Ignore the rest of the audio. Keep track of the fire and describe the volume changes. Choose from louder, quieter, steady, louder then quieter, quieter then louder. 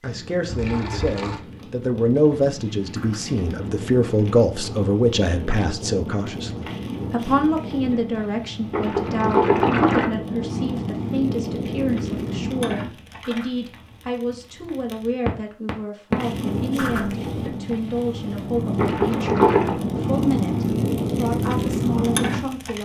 louder.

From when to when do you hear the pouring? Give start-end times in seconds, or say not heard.
0.5-1.4, 8.7-10.1, 18.8-19.8.